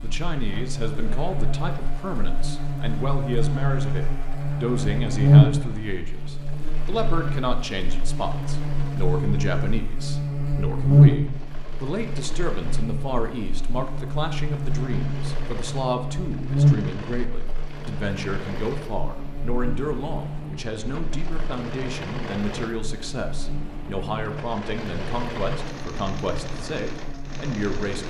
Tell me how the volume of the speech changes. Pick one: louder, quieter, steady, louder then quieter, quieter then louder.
steady.